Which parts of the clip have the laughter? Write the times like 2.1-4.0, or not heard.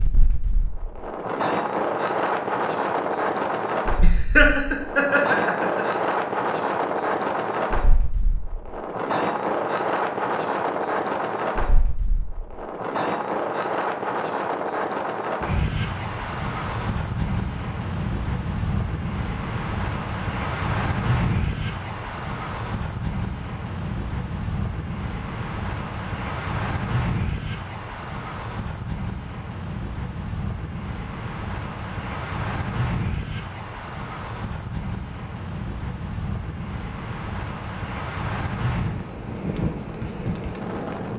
4.0-6.0.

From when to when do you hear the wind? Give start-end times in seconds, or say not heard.
0.0-41.1.